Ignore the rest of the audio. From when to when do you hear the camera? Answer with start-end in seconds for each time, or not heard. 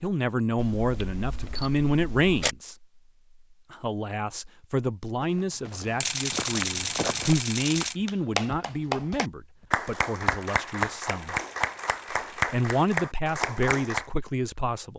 0.6-2.5, 6.0-8.0, 10.4-12.8.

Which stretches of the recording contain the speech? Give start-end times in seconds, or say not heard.
0.0-2.9, 3.7-11.3, 12.3-14.9.